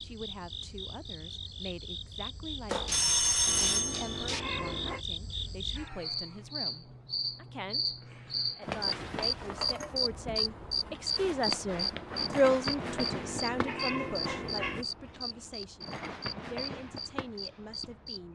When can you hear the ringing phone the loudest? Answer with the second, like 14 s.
3 s.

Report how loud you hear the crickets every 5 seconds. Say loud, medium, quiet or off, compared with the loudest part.
medium, loud, loud, medium.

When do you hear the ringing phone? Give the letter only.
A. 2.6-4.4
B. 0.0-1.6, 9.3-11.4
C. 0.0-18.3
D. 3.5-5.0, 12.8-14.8
A.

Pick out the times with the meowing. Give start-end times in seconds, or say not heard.
3.5-5.0, 12.8-14.8.